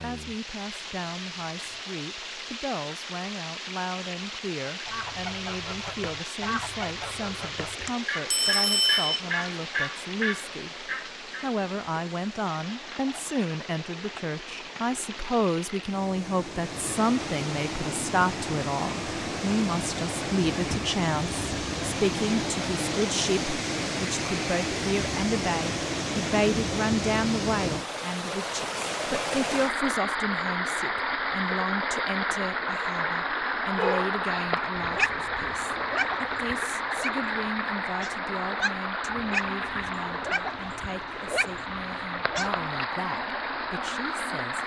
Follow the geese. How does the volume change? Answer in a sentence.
The volume of the geese goes up.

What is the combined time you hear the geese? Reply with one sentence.
You can hear the geese for 7 seconds altogether.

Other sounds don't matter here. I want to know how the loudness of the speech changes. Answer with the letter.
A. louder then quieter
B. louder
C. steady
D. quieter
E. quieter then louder
A.